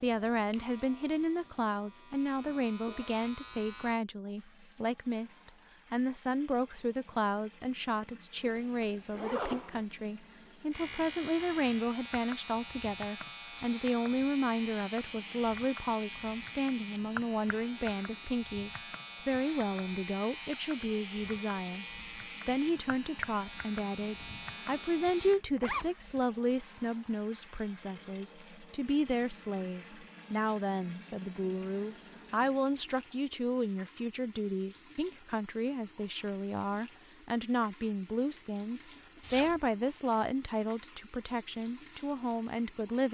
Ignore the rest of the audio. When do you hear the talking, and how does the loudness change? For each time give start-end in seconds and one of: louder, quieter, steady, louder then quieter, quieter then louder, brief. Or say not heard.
0.0-21.9 steady
22.4-43.0 steady.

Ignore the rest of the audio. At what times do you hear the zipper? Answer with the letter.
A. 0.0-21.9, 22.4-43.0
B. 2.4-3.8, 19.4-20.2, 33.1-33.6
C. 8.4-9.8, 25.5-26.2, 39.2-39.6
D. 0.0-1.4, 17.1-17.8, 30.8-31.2
C.